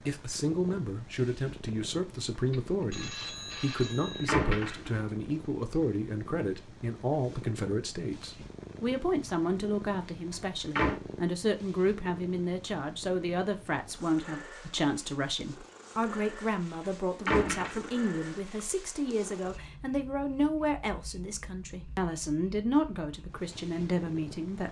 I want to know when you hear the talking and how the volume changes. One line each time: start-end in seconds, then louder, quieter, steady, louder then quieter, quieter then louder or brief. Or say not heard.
0.1-24.6 steady.